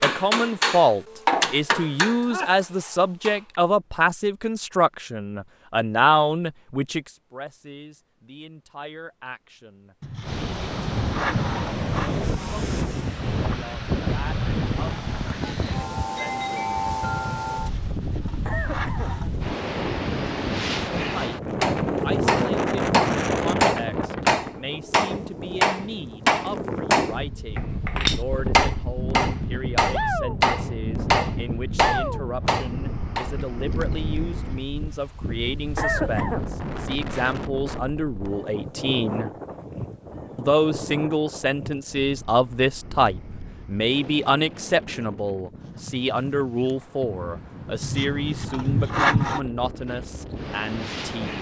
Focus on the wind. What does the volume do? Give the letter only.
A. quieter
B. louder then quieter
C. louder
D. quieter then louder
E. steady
A.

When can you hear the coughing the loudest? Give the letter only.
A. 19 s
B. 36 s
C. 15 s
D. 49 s
B.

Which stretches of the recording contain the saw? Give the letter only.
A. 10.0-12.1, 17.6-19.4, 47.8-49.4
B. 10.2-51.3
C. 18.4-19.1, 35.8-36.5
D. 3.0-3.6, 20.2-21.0
A.